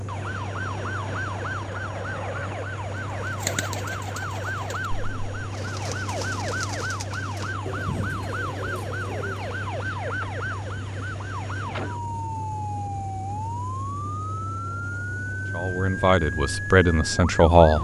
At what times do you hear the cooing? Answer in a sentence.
The cooing can be heard from 3.2 to 9.6 s.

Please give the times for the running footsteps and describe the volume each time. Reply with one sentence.
The running footsteps can't be heard in this clip.